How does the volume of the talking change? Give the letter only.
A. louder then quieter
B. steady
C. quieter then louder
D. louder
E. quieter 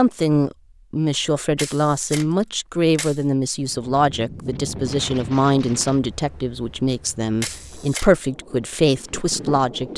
B.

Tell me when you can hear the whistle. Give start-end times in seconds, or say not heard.
not heard.